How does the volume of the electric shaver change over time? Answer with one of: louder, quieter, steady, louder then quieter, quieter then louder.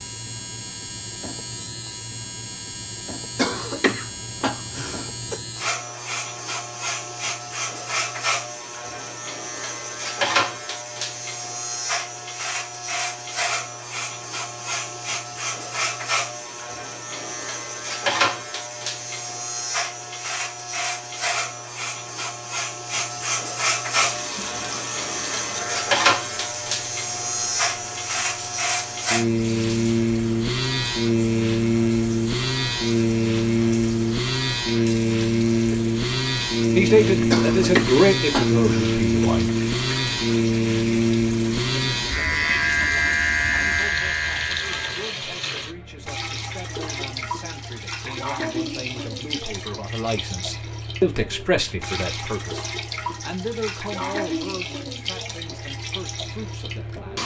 louder.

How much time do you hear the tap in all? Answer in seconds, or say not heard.
33 s.